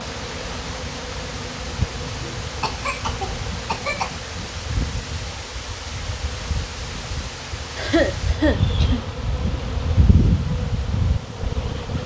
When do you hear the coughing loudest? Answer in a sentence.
The loudest moment of the coughing is at 8 seconds.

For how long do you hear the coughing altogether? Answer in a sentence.
You can hear the coughing for 3 seconds altogether.